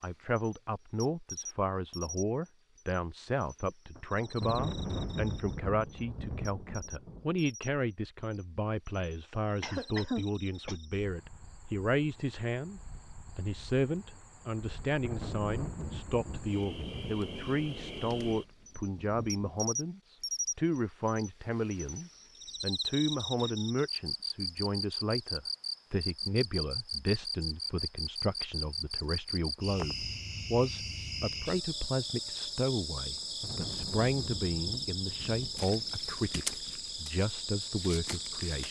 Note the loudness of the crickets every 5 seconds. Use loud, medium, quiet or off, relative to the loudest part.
medium, quiet, quiet, medium, loud, loud, loud, loud.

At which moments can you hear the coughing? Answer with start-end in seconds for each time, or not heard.
9.6-10.8.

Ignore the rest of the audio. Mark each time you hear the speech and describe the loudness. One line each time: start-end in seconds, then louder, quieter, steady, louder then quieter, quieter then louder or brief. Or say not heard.
0.0-38.6 steady.